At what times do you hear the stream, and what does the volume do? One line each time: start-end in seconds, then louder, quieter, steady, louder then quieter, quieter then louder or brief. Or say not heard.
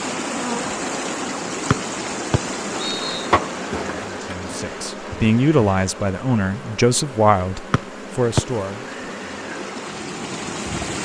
0.0-11.0 quieter then louder.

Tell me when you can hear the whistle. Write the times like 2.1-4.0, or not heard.
1.7-3.3, 7.7-8.4.